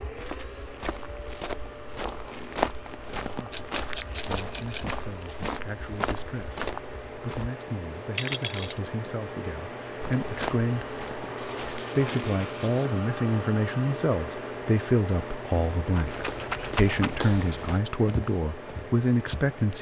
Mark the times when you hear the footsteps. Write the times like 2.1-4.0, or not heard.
0.0-7.5, 10.0-11.8, 16.1-19.6.